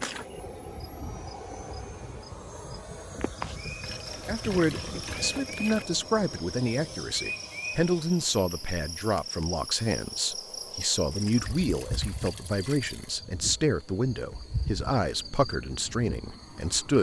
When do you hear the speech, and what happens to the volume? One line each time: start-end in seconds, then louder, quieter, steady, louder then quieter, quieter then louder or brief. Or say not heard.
4.2-16.9 steady.